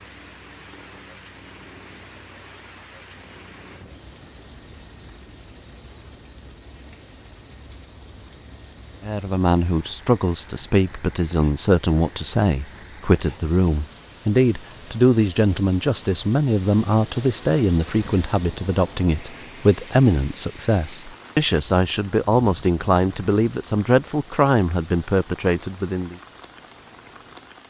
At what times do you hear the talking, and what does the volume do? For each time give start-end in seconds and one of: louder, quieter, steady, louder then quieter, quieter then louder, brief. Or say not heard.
9.0-26.1 steady.